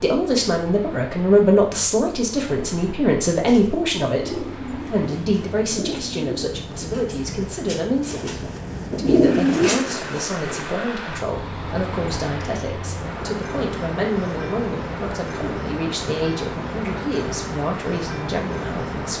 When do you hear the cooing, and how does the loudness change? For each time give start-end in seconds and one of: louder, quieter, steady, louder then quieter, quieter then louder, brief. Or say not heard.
3.3-10.7 quieter then louder.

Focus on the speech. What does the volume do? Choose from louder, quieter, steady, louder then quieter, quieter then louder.
quieter.